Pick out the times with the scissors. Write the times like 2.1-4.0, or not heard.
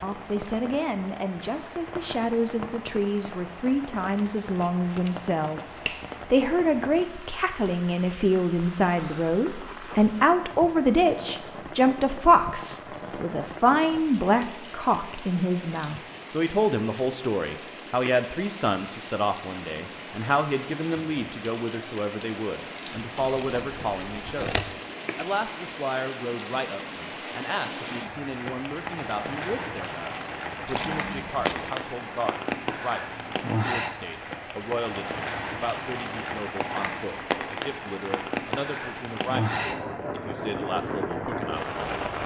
4.1-6.0, 23.1-24.8, 30.6-31.8.